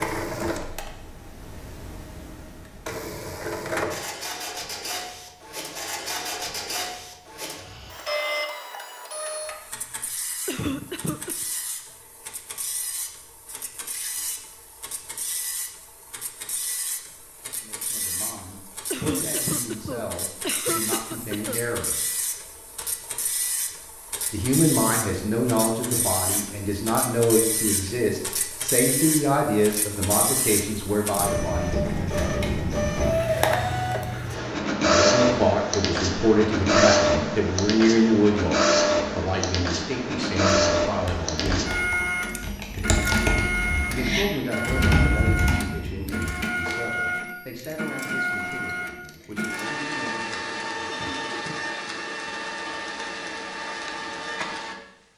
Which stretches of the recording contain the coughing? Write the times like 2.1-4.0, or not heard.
10.4-11.4, 18.9-21.6, 50.9-51.8.